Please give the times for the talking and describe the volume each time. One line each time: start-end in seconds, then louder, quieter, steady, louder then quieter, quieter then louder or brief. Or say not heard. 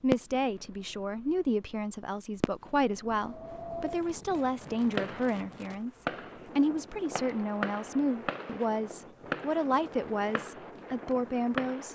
0.0-11.8 steady.